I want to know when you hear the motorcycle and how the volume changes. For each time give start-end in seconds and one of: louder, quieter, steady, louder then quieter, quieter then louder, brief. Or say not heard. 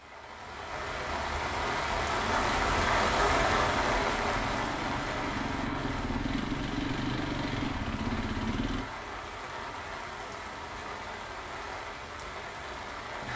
2.1-8.8 louder.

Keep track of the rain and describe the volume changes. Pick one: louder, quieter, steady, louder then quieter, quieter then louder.
quieter.